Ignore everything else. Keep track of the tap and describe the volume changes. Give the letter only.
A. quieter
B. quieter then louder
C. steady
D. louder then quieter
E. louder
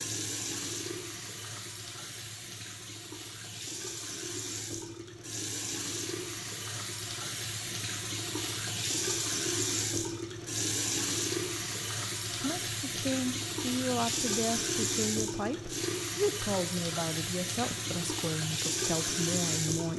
E.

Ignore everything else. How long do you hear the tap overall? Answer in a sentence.
You can hear the tap for 20 seconds altogether.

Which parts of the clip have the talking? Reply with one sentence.
The talking can be heard from 12.3 to 19.9 s.